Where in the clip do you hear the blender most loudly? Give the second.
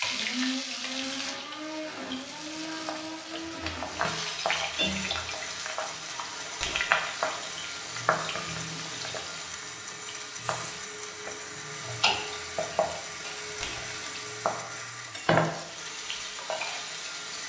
1 s.